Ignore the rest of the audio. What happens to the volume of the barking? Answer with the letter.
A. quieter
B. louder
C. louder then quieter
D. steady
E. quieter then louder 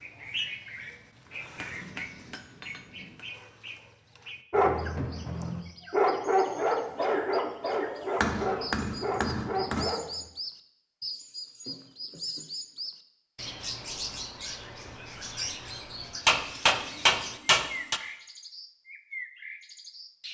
C.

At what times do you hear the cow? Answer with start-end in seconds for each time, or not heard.
not heard.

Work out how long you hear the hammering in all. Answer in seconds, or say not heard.
5 s.